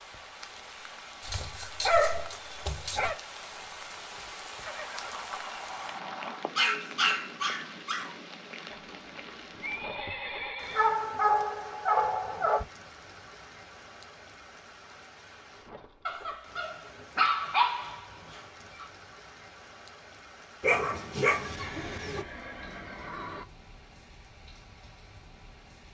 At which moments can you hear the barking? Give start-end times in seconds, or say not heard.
1.2-3.1, 6.5-8.2, 10.8-12.7, 16.1-18.9, 20.6-22.2.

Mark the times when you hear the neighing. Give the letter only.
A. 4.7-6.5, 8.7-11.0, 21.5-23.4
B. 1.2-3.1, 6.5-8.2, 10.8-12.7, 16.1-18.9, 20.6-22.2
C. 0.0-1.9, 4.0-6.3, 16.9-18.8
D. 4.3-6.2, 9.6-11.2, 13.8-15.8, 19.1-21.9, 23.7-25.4
A.